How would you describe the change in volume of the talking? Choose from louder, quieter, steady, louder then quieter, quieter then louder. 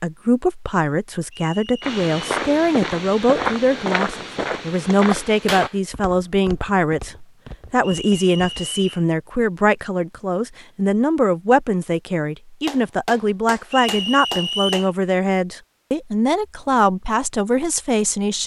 steady.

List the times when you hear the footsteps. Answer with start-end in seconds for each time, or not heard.
1.8-8.8.